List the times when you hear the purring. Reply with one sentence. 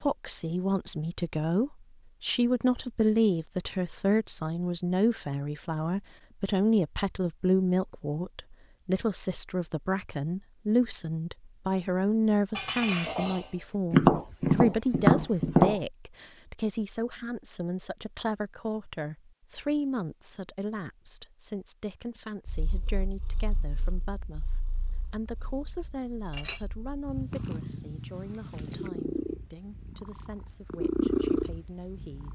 You can hear the purring from 22.4 to 32.3 s.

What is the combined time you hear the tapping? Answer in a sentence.
You can hear the tapping for 2 seconds altogether.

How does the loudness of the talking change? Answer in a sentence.
The volume of the talking goes down.